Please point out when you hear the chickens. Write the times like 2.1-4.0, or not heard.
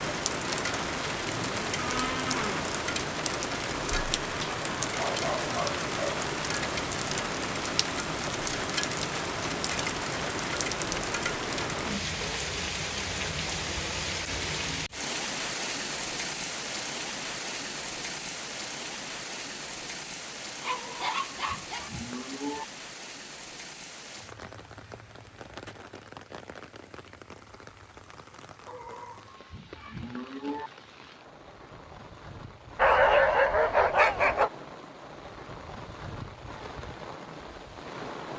not heard.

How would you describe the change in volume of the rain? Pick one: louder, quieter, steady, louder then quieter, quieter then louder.
quieter.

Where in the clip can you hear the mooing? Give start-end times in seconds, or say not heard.
1.2-2.7, 20.6-22.6, 28.6-30.7.